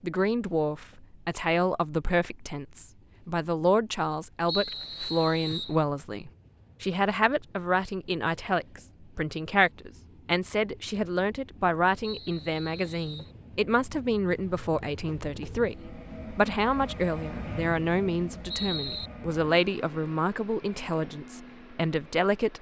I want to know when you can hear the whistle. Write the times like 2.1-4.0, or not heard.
4.5-5.8, 12.0-13.3, 17.4-19.1.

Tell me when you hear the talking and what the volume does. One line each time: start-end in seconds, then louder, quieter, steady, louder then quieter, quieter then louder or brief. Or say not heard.
0.0-22.5 steady.